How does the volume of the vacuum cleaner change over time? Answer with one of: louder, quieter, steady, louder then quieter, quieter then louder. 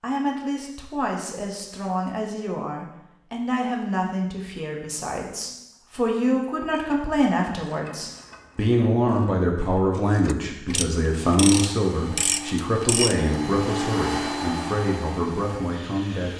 louder then quieter.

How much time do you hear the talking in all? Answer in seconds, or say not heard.
16 s.